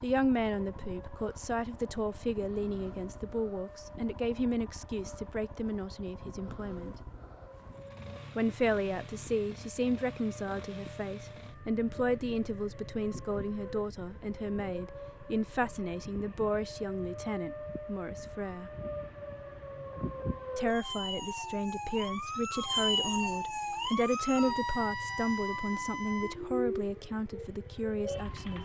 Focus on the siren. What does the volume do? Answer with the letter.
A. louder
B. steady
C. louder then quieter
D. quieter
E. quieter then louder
A.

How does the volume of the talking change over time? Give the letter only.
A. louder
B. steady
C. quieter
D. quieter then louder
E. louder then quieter
B.